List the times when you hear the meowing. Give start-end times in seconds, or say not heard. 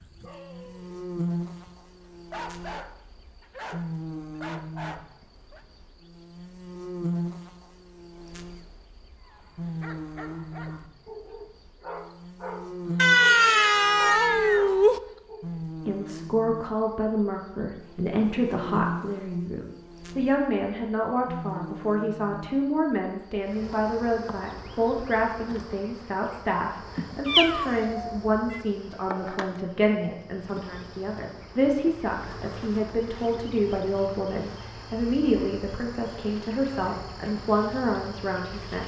12.9-15.0, 27.2-28.6.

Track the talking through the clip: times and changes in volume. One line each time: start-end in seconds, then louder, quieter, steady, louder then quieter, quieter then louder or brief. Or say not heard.
15.7-38.8 steady.